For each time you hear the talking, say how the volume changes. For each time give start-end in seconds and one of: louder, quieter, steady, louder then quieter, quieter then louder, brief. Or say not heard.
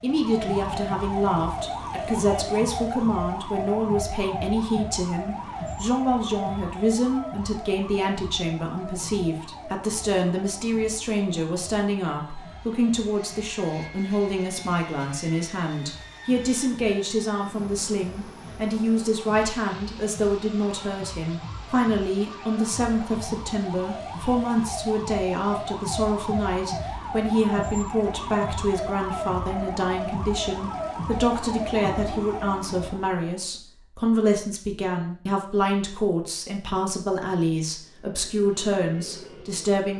0.0-39.9 steady.